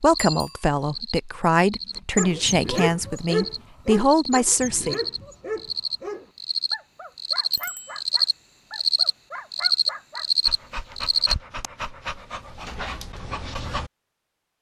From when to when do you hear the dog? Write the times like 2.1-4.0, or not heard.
2.1-13.9.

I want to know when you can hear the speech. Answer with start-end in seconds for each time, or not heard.
0.0-5.0.